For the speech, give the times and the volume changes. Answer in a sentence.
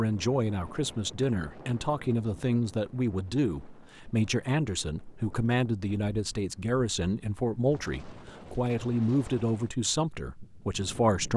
You can hear the speech from 0.0 to 11.3 s, at a steady volume.